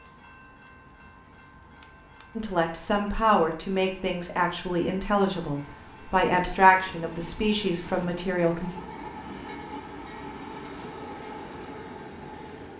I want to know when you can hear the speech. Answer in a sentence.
The speech can be heard from 2.4 to 8.7 s.